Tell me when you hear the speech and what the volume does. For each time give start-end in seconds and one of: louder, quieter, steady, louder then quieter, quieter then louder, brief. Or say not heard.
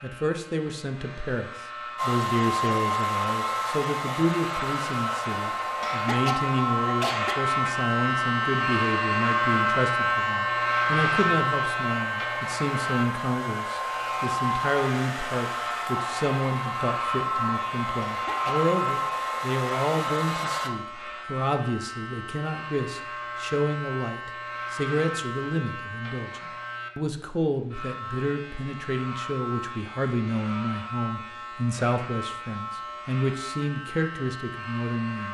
0.0-35.2 steady.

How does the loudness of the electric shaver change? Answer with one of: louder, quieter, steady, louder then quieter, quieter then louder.
louder then quieter.